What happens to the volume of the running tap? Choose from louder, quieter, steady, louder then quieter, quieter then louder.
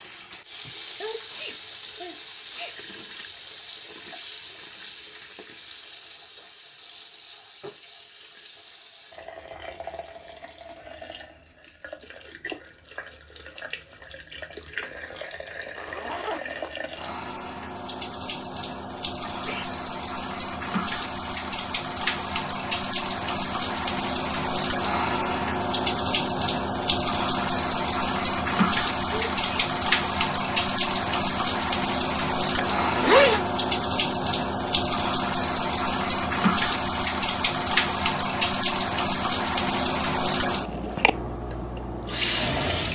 louder.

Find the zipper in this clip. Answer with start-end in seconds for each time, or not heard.
15.8-16.7, 32.8-33.5.